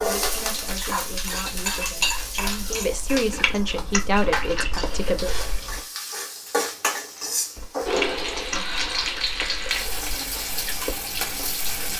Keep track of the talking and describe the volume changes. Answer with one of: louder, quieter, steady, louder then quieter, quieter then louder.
louder.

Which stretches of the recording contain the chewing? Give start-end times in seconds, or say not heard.
0.0-5.8, 7.5-11.7.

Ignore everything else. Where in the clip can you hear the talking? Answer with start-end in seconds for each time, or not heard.
0.0-5.3.